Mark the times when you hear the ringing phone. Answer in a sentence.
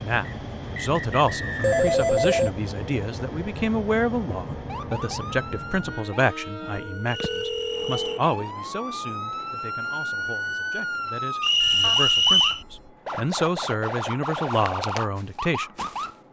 You can hear the ringing phone from 1.6 to 2.5 s, from 6.8 to 8.2 s and from 11.6 to 12.9 s.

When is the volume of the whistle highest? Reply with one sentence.
The volume of the whistle peaks at 12 seconds.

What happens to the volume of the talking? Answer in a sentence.
The volume of the talking goes down, then up.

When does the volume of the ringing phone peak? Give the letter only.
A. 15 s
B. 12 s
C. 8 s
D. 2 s
D.